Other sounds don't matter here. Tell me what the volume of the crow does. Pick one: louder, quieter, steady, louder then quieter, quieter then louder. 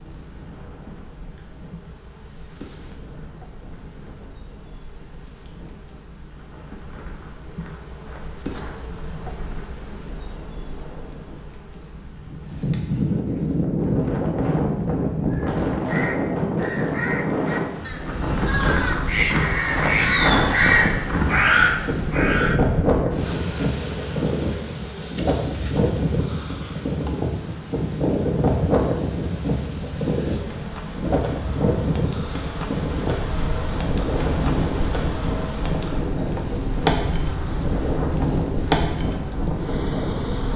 louder.